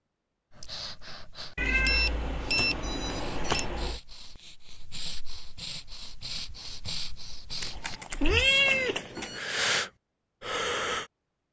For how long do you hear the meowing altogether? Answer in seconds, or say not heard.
4 s.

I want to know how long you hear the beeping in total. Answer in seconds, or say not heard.
3 s.